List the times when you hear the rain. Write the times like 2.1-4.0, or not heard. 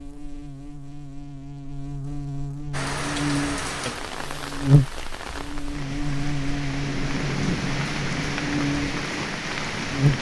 2.7-10.1.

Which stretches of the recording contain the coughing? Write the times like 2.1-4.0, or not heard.
not heard.